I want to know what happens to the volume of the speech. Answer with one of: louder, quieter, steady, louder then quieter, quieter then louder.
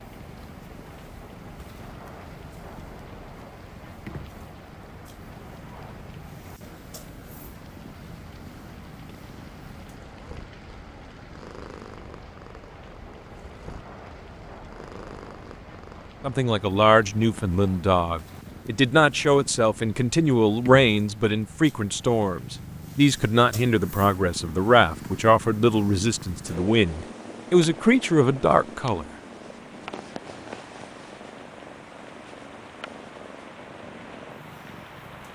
steady.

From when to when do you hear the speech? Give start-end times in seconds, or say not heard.
16.2-29.1.